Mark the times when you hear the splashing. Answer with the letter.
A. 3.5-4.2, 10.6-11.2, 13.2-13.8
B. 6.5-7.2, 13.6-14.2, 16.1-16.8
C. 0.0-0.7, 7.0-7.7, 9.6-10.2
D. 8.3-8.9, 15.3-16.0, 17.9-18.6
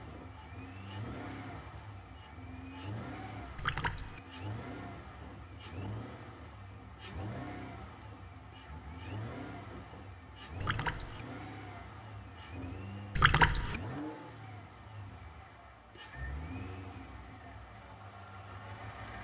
A.